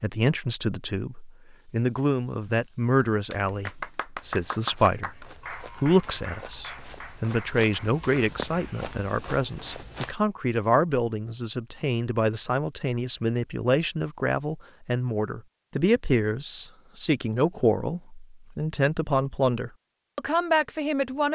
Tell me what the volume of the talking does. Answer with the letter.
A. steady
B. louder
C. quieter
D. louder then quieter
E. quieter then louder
A.